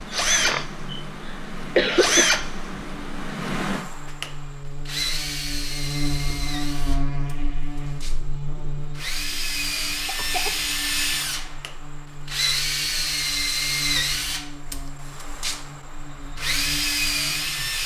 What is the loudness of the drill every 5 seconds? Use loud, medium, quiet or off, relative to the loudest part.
loud, medium, loud, loud.